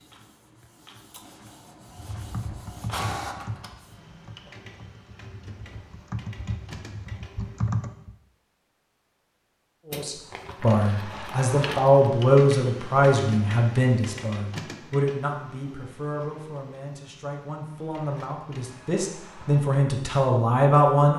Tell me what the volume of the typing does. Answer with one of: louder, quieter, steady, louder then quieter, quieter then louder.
quieter then louder.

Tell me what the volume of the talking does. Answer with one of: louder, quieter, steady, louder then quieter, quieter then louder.
quieter then louder.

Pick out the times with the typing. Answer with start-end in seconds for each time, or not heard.
1.9-8.2.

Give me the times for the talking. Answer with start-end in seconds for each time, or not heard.
9.8-21.1.